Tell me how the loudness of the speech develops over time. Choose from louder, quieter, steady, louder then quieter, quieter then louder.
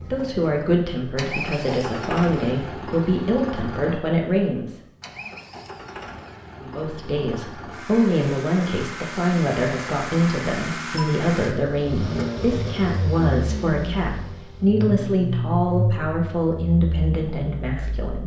steady.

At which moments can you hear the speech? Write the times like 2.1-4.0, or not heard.
0.0-4.8, 6.6-18.2.